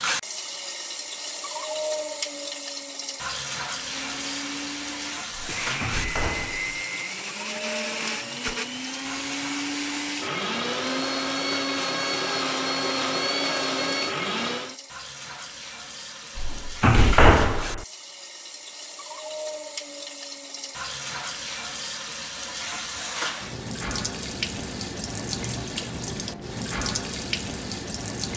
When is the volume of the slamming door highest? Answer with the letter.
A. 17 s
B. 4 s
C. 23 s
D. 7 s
A.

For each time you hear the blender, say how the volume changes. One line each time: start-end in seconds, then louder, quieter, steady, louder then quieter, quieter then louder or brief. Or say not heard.
3.7-14.8 louder.